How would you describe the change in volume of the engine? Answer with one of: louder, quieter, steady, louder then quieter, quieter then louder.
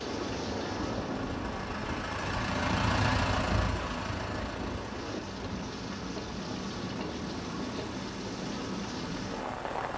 louder then quieter.